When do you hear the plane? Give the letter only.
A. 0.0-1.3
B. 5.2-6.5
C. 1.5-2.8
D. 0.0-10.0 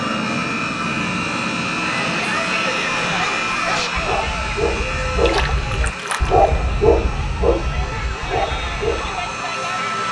D.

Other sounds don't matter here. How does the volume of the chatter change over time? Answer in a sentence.
The loudness of the chatter goes down, then up.